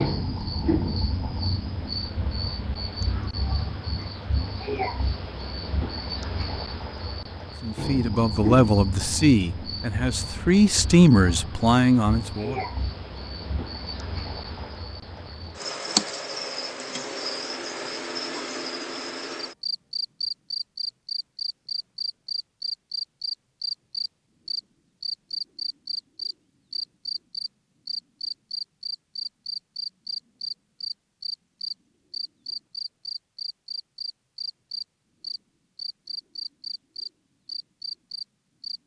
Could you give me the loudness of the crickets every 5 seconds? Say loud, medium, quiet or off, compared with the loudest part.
loud, loud, medium, loud, loud, loud, loud, medium.